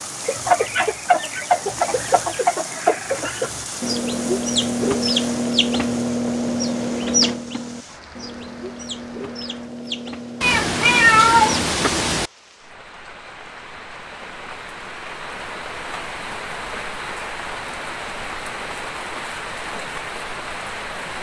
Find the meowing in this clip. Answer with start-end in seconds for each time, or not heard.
10.4-12.3.